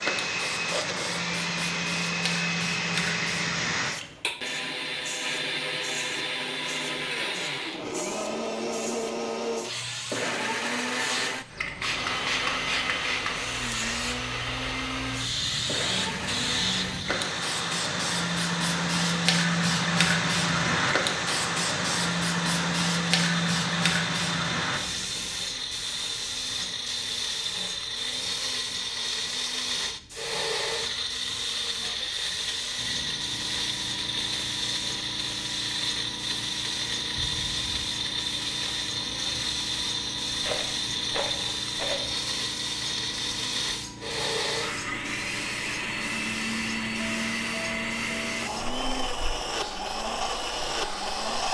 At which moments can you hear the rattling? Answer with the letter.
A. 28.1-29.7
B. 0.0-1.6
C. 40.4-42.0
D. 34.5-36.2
C.